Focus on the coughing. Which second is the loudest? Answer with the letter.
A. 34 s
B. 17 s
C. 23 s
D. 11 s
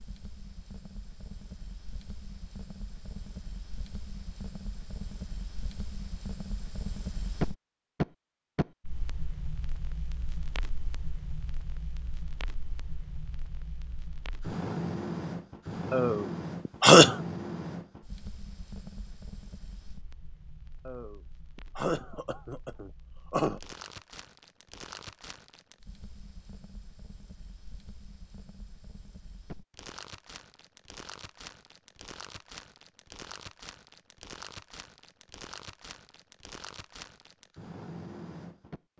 B.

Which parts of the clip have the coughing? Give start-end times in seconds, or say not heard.
15.9-17.1, 20.9-23.6.